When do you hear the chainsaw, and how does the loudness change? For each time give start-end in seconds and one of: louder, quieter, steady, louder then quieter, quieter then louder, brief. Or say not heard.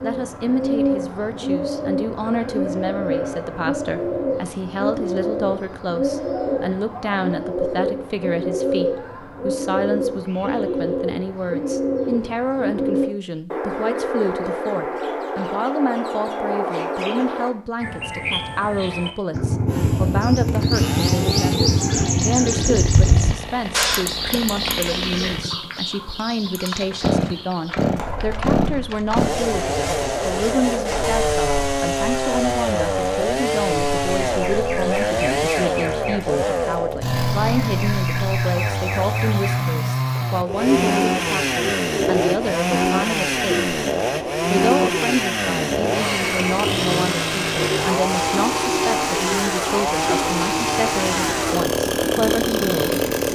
19.6-53.2 louder.